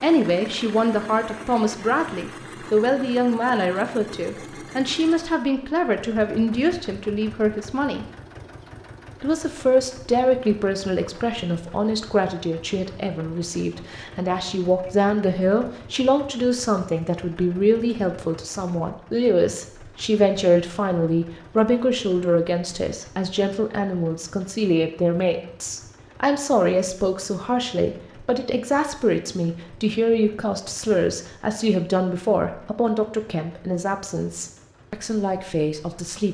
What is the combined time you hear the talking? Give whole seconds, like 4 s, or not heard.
35 s.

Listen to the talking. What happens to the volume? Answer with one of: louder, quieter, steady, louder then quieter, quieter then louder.
steady.